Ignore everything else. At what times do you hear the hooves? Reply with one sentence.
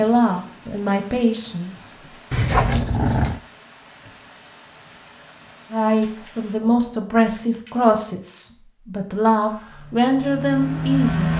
The hooves can't be heard in this clip.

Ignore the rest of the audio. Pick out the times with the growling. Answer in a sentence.
The growling can be heard from 2.3 to 3.4 s and from 6.0 to 7.9 s.